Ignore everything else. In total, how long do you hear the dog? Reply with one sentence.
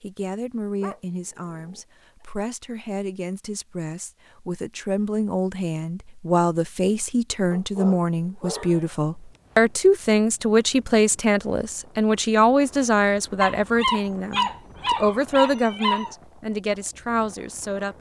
The dog can be heard for 5 seconds in total.